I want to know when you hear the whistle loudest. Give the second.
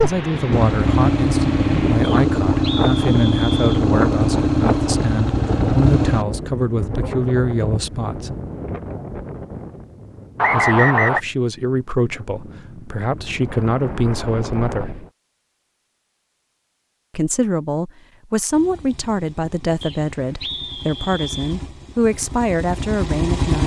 11 s.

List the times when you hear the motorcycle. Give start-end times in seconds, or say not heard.
0.0-6.2, 18.5-23.6.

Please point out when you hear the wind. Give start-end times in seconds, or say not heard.
0.0-15.1.